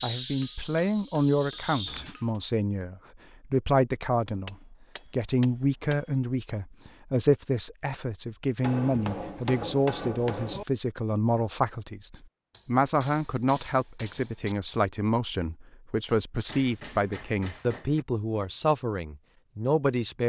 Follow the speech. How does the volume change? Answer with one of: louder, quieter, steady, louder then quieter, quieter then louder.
steady.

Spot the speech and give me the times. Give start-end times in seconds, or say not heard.
0.0-20.2.